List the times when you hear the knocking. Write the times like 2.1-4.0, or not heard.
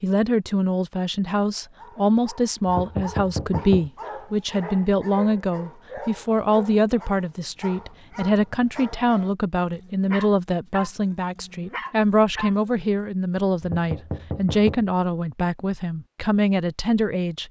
2.6-3.9, 13.6-14.8.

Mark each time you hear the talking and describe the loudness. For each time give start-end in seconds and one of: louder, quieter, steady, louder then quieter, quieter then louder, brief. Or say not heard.
0.0-17.4 steady.